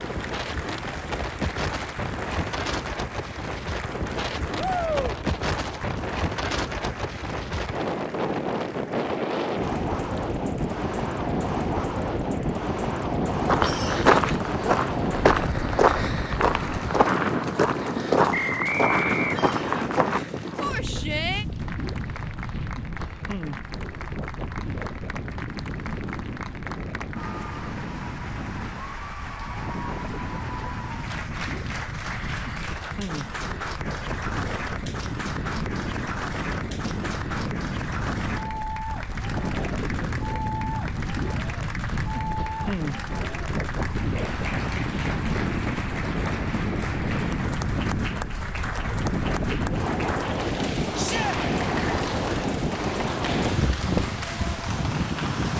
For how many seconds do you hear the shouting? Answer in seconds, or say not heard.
2 s.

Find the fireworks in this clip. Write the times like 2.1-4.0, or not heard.
not heard.